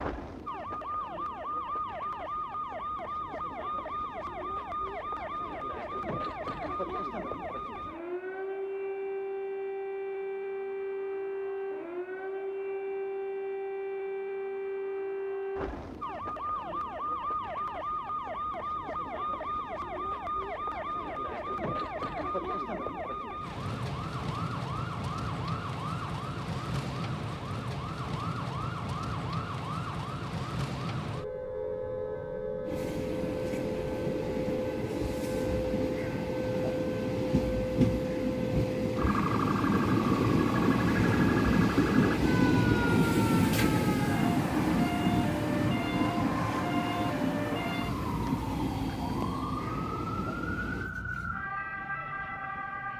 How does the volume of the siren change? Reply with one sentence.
The volume of the siren stays about the same.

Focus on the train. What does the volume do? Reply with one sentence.
The loudness of the train goes up, then down.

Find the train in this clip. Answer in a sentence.
The train can be heard from 32.6 to 50.9 s.